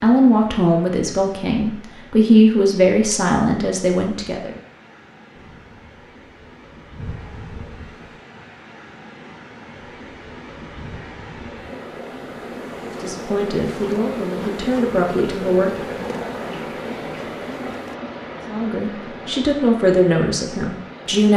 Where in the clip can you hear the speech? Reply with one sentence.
The speech can be heard from 0.0 to 4.5 s, from 12.9 to 15.8 s and from 18.5 to 21.3 s.